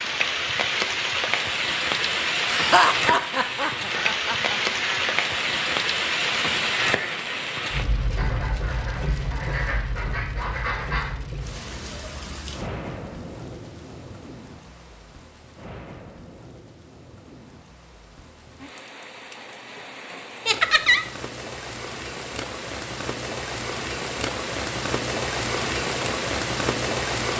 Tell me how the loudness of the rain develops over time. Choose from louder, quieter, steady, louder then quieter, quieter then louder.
quieter then louder.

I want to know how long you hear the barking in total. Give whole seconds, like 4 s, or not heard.
not heard.